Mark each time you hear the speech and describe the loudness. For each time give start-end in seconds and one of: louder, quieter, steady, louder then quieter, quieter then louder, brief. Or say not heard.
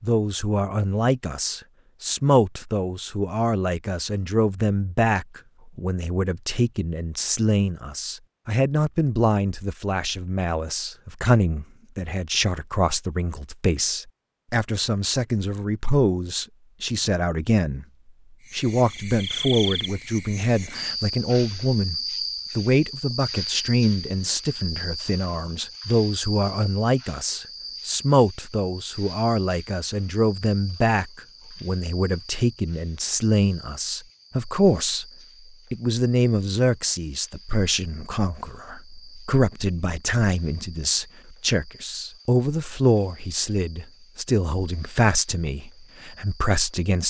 0.0-17.9 steady
18.5-35.0 steady
35.7-47.0 steady.